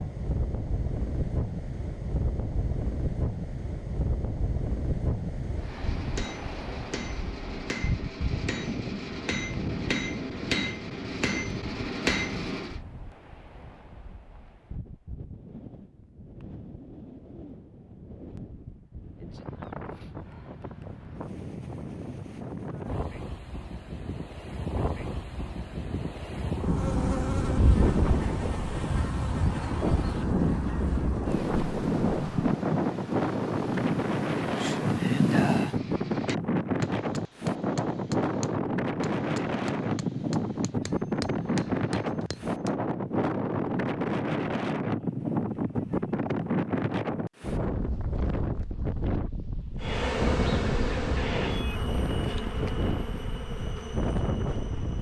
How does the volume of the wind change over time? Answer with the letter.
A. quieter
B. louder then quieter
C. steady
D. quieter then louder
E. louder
D.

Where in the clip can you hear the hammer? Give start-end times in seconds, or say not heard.
5.6-12.8, 35.5-42.8.